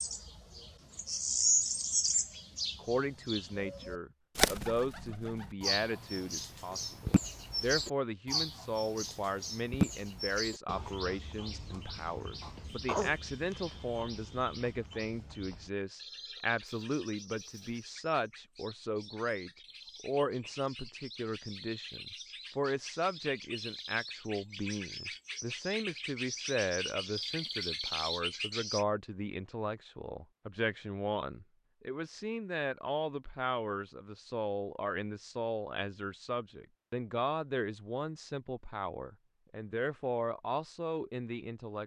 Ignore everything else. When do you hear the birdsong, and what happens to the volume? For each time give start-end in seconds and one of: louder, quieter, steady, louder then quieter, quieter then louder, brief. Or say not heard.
0.0-28.9 quieter then louder.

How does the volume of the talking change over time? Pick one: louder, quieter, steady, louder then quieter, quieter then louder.
steady.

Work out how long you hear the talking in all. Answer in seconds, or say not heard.
39 s.